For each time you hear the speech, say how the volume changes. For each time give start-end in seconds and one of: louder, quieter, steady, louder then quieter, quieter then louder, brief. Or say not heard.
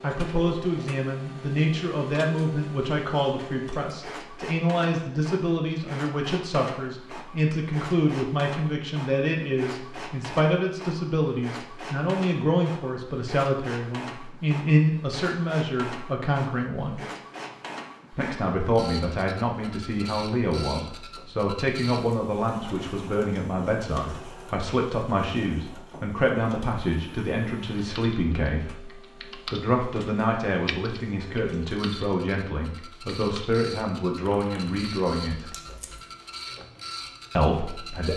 0.0-17.0 steady
18.1-28.9 steady
29.5-35.5 steady
37.4-38.1 brief.